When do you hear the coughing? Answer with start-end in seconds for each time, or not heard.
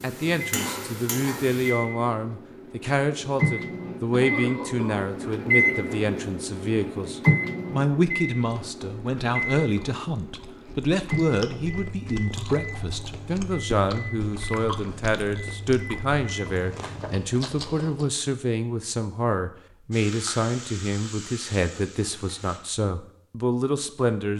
4.0-5.1.